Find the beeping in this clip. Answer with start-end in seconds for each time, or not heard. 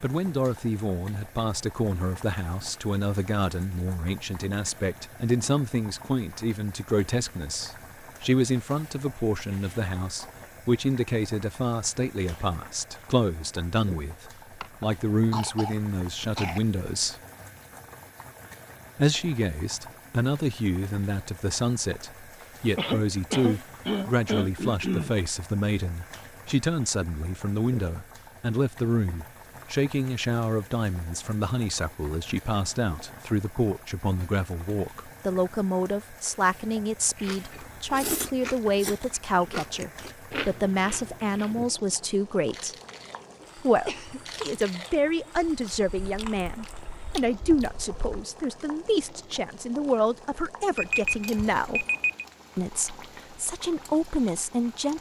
50.8-52.2.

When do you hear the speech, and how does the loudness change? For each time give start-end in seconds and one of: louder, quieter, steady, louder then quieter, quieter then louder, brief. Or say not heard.
0.0-17.1 steady
18.9-42.8 steady
43.5-51.9 steady
52.5-54.9 brief.